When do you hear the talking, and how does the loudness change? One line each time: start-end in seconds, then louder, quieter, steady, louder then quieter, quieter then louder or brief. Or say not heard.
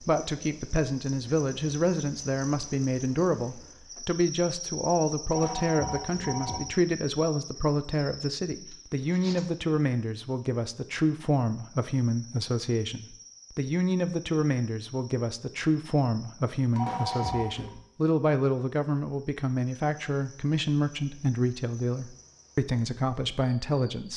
0.0-24.1 steady.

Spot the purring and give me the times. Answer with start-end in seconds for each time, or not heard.
not heard.